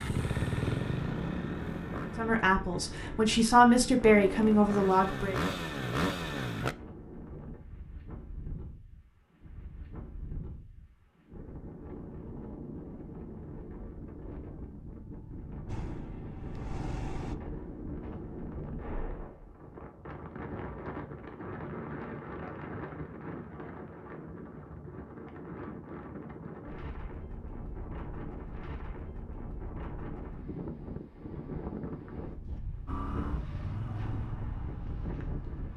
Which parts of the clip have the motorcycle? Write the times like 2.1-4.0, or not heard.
0.0-6.8, 15.7-17.4, 32.9-35.7.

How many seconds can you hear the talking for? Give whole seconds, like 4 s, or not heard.
3 s.